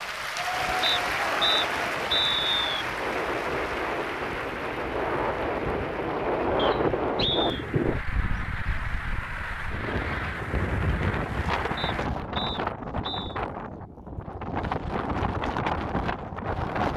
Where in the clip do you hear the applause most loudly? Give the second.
1 s.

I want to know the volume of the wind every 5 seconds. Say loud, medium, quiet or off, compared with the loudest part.
medium, loud, loud, loud.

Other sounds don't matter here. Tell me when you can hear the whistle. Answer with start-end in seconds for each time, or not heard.
0.8-2.9, 6.5-7.7, 11.8-13.4.